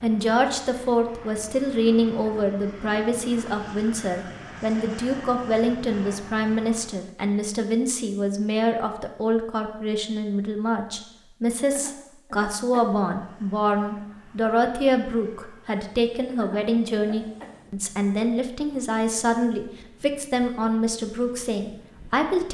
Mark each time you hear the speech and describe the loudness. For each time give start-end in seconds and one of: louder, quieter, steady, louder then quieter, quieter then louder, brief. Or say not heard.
0.0-22.4 steady.